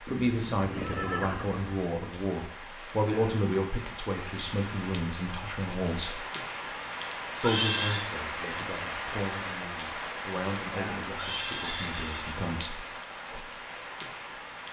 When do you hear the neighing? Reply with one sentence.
The neighing can be heard from 0.1 to 1.8 s, from 7.4 to 8.1 s and from 11.1 to 12.3 s.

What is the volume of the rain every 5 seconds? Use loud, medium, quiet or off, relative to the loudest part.
medium, loud, loud.